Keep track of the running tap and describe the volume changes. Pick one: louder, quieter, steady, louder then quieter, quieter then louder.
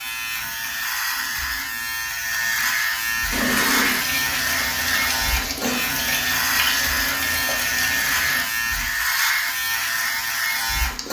steady.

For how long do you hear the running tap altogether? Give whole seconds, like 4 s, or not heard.
5 s.